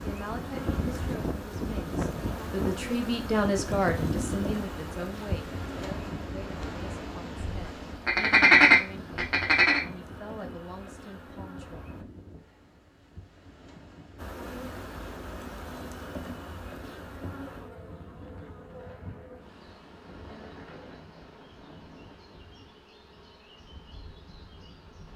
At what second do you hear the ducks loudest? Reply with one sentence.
The volume of the ducks peaks at 9 seconds.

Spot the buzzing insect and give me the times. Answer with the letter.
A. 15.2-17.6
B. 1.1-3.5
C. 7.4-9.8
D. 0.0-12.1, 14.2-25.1
D.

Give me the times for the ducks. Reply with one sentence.
You can hear the ducks from 7.4 to 9.8 s.